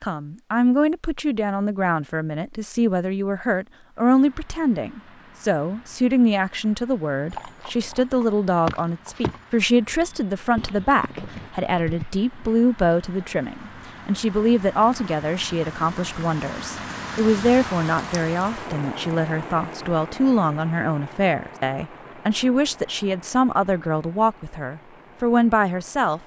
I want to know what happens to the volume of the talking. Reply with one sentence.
The volume of the talking stays about the same.